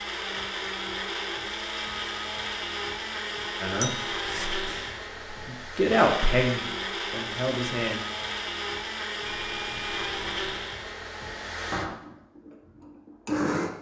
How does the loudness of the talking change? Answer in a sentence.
The loudness of the talking goes up, then down.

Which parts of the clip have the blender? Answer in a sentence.
The blender can be heard from 0.0 to 13.7 s.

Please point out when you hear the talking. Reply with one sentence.
The talking can be heard from 3.6 to 8.1 s.